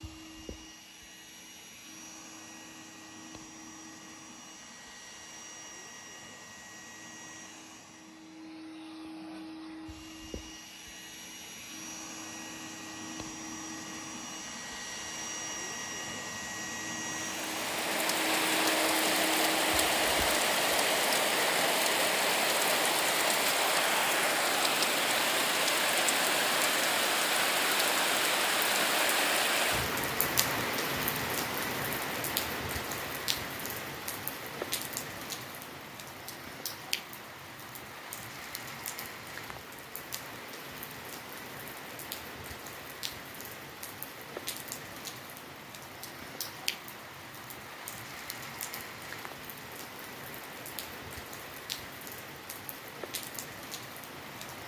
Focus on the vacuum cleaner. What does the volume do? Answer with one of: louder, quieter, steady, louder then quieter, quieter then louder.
louder.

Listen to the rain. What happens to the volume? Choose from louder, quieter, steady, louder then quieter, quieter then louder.
quieter.